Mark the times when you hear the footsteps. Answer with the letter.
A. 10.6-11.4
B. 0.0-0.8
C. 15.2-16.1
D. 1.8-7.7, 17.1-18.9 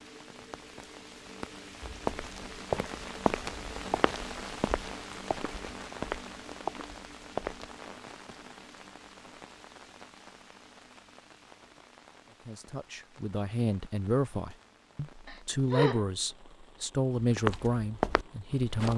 D.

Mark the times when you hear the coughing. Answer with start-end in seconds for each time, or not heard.
15.2-16.1.